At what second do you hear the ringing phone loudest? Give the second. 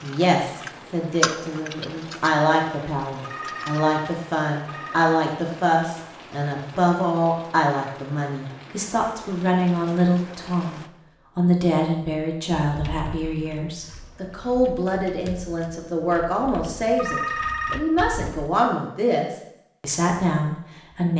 17 s.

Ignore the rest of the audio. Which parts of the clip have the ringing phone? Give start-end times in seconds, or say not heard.
3.2-5.1, 16.9-17.9.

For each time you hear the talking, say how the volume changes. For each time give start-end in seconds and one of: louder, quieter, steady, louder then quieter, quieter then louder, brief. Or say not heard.
0.0-21.1 steady.